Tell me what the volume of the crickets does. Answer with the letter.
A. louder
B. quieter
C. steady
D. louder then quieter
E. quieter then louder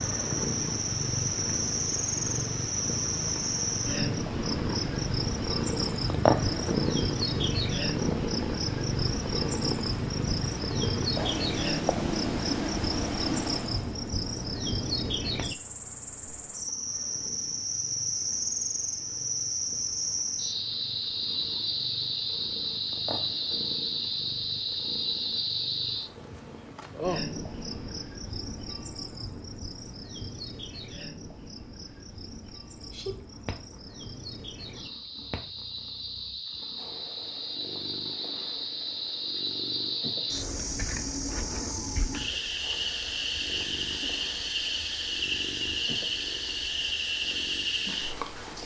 E.